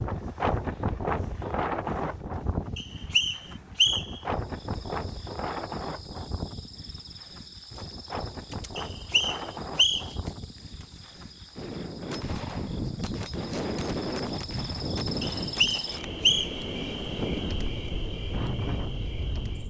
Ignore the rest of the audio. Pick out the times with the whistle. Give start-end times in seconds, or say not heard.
2.8-4.2, 8.8-10.1, 15.2-16.6.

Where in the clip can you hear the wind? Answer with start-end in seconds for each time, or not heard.
0.0-19.6.